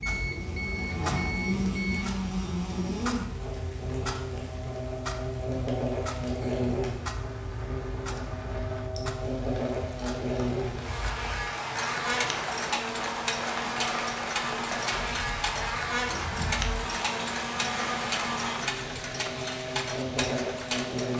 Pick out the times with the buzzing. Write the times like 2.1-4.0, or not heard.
0.0-21.1.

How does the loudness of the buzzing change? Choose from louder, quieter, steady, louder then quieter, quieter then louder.
steady.